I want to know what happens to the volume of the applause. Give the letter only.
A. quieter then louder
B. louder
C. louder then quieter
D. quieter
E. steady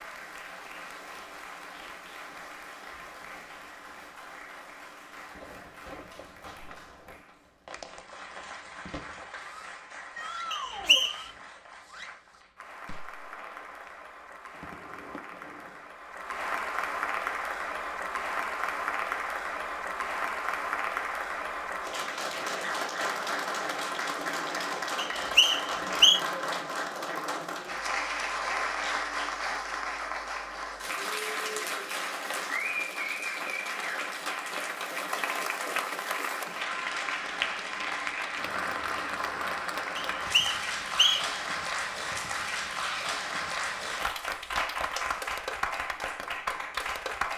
B.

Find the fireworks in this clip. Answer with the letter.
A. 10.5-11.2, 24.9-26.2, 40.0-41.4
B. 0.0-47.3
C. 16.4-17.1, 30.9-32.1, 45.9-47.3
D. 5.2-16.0
D.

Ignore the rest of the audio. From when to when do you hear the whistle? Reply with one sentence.
You can hear the whistle from 10.5 to 11.2 s, from 24.9 to 26.2 s and from 40.0 to 41.4 s.